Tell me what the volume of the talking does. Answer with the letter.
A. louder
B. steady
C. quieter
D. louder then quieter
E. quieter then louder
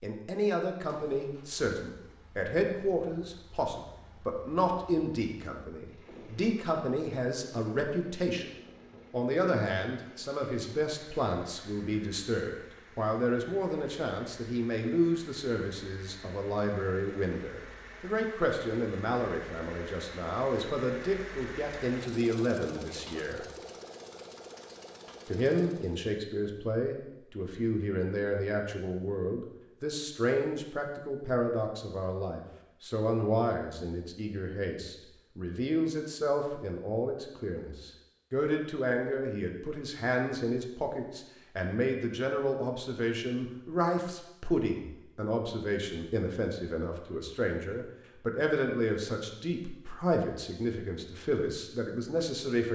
B.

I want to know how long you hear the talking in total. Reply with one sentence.
You can hear the talking for 50 seconds altogether.